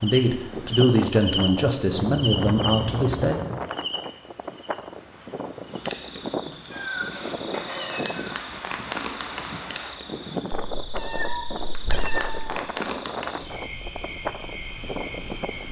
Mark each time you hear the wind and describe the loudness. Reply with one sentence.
The wind can be heard from 0.0 to 15.6 s, at a steady volume.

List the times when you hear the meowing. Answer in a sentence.
You can hear the meowing from 1.9 to 3.5 s, from 6.7 to 8.3 s and from 10.7 to 12.6 s.